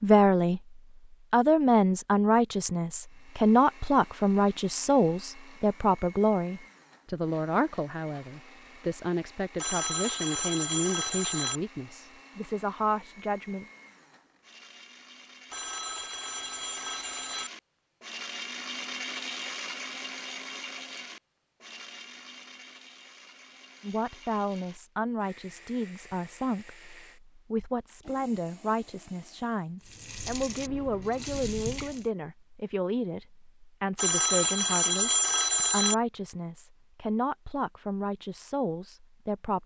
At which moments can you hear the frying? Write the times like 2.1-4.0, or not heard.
29.8-32.1.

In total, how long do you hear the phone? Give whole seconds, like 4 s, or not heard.
6 s.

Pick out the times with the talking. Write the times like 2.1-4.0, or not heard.
0.0-13.7, 23.8-39.6.